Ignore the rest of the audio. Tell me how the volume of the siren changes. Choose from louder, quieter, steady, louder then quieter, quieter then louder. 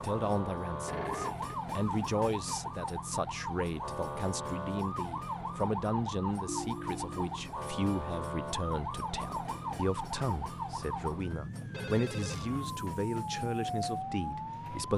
steady.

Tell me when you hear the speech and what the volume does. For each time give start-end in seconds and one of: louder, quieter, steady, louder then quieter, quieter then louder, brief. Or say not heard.
0.0-14.9 steady.